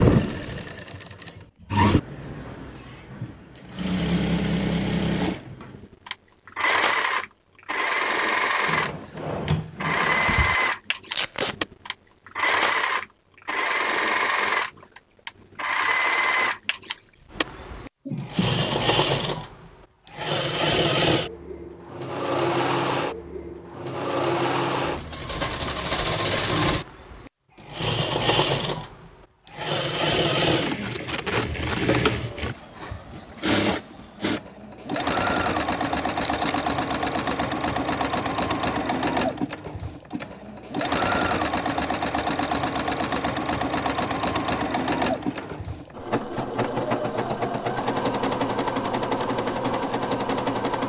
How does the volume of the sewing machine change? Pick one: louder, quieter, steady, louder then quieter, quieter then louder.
steady.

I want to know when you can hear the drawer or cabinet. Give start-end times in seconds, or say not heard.
8.7-10.6, 18.1-18.9, 45.1-45.7.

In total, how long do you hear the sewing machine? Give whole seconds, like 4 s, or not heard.
51 s.